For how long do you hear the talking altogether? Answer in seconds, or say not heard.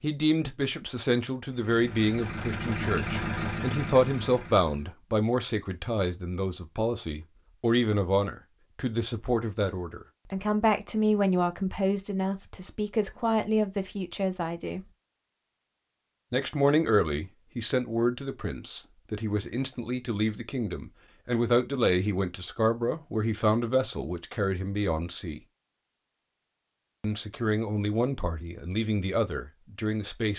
27 s.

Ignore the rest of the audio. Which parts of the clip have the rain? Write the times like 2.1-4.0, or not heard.
not heard.